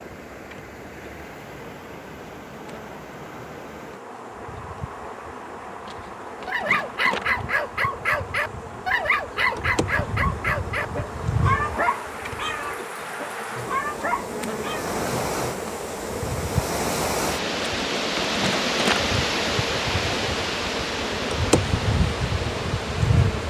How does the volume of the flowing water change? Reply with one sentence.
The loudness of the flowing water goes up.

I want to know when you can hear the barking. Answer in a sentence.
You can hear the barking from 6.5 to 14.9 s.